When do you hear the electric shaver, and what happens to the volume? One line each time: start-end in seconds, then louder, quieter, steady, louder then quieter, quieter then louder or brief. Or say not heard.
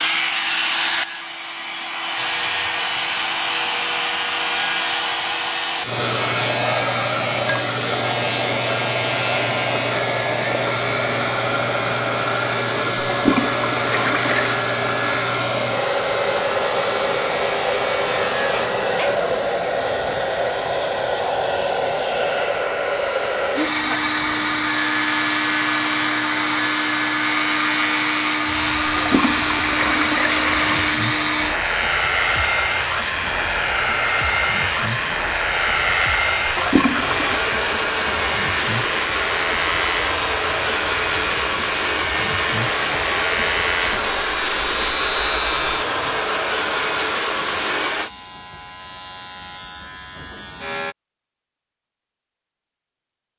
2.1-51.0 steady.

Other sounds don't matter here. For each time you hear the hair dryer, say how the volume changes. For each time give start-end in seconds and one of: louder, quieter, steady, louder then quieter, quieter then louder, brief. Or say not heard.
0.0-48.1 steady.